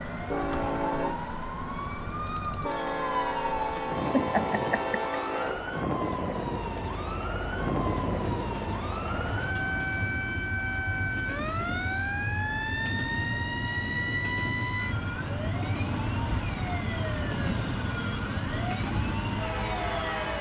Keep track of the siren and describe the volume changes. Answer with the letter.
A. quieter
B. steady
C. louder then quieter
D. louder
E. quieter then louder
B.